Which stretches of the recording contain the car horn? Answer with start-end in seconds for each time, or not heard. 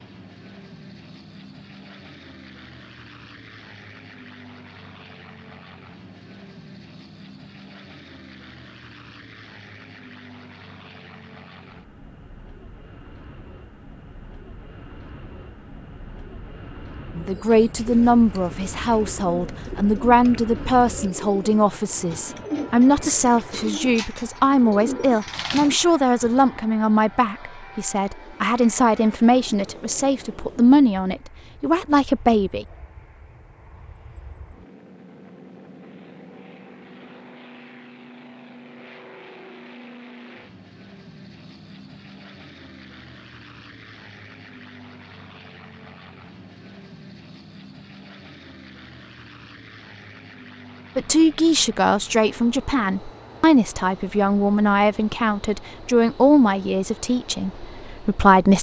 not heard.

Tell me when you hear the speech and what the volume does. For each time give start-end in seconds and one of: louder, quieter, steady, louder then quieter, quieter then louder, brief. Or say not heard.
17.1-32.6 steady
51.0-58.5 quieter.